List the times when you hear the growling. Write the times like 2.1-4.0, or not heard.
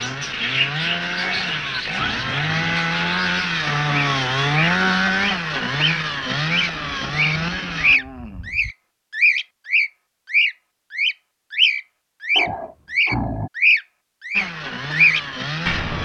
1.2-2.9, 6.7-8.8, 12.3-13.5.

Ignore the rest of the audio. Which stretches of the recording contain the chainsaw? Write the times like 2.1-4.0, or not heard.
0.0-8.0, 14.3-15.9.